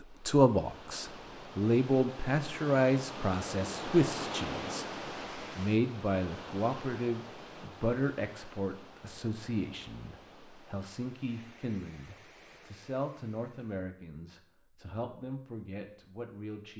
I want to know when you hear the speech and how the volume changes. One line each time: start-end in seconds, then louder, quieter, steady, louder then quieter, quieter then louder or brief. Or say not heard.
0.2-16.7 quieter.